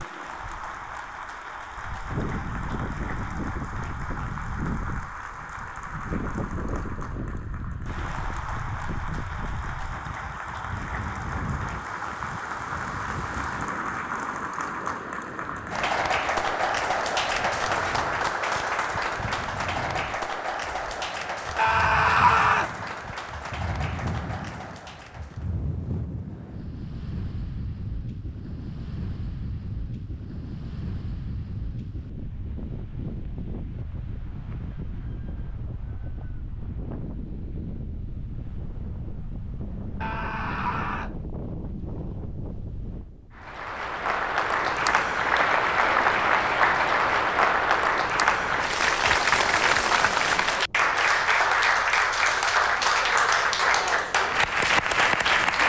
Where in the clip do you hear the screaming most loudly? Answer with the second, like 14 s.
22 s.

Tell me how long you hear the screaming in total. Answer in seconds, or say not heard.
2 s.